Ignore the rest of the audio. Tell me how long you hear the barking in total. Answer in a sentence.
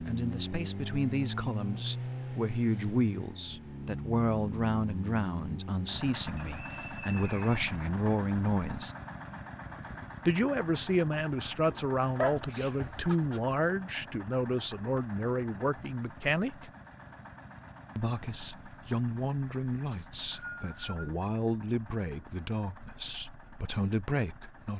You can hear the barking for 2 seconds altogether.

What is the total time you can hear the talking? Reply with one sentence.
The talking can be heard for 22 seconds in total.